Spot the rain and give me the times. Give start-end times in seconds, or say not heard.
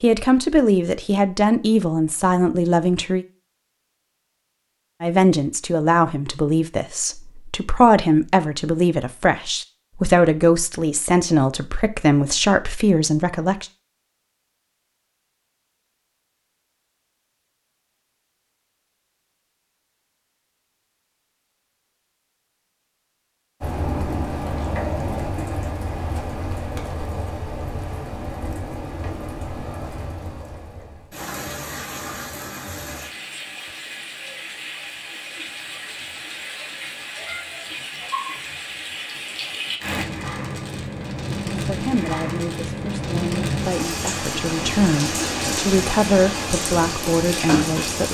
23.6-48.0.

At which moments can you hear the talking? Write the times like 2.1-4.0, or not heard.
0.0-3.2, 5.0-13.7, 41.5-48.0.